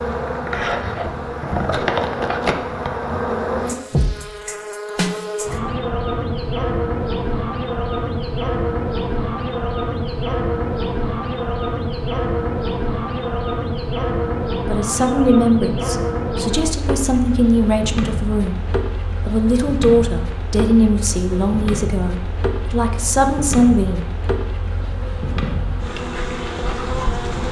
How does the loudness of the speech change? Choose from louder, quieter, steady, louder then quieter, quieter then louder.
steady.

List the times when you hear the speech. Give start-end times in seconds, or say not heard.
14.7-18.6, 19.2-24.1.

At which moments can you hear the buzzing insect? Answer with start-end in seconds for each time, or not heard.
0.0-27.4.